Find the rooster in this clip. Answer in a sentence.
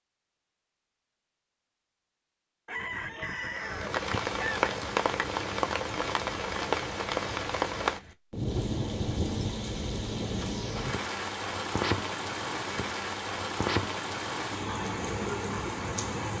The rooster can be heard from 2.6 to 4.7 s.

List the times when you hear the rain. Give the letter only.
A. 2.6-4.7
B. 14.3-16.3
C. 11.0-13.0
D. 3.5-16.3
D.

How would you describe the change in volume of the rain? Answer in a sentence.
The volume of the rain stays about the same.